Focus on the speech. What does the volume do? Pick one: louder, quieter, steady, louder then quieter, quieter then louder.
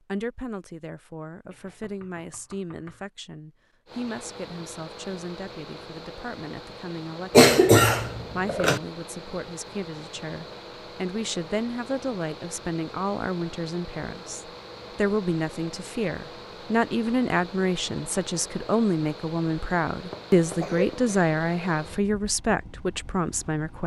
louder.